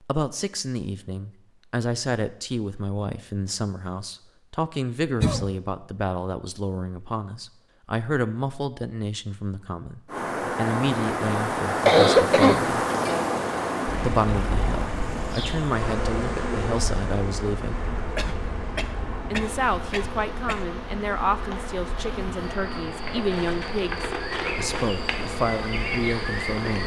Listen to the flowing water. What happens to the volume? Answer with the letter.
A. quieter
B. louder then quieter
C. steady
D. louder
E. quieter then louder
A.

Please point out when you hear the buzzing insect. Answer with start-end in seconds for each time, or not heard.
14.8-26.8.